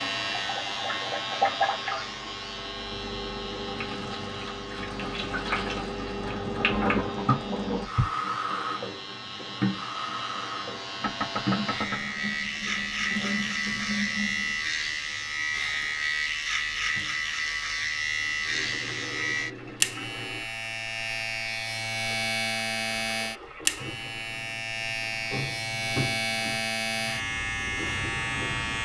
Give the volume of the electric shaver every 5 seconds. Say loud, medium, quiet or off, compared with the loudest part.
medium, quiet, loud, loud, loud, loud.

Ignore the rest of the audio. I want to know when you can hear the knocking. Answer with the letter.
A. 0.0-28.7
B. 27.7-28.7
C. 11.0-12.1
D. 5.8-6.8
C.